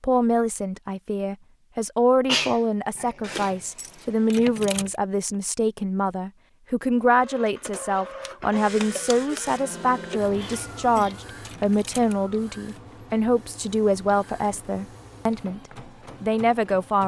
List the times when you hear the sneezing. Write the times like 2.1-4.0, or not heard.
2.2-3.5, 9.9-11.2.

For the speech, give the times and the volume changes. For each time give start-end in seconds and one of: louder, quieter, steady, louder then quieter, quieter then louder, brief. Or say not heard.
0.0-15.6 steady
16.2-17.0 brief.